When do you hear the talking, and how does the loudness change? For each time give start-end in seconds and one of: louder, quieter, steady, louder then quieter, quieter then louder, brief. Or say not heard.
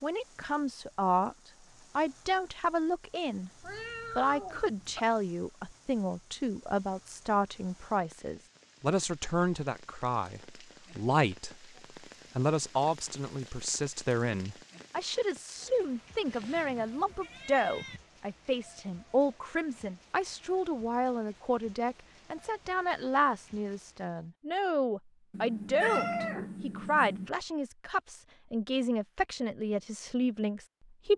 0.0-1.4 brief
1.9-3.5 brief
4.2-11.7 steady
12.3-31.1 steady.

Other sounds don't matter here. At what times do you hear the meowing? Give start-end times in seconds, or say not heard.
3.6-5.0, 16.2-18.0, 25.3-27.3.